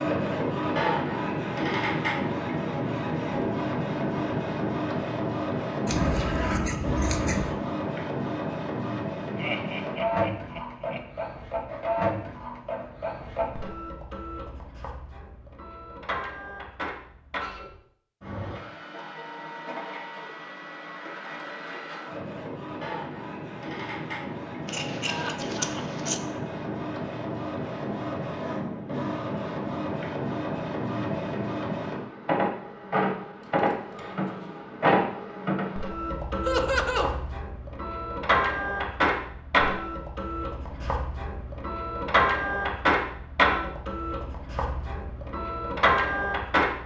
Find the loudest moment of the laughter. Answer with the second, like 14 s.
37 s.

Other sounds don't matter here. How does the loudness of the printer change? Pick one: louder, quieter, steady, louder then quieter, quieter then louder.
quieter then louder.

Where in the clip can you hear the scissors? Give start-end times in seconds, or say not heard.
5.8-7.6, 24.6-26.2, 33.4-34.6.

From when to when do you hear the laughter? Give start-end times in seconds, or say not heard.
9.3-11.0, 25.1-26.1, 36.5-37.1.